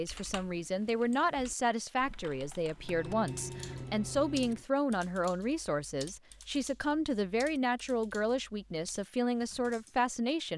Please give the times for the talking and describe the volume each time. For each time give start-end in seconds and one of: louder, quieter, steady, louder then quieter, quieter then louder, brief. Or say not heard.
0.0-10.5 steady.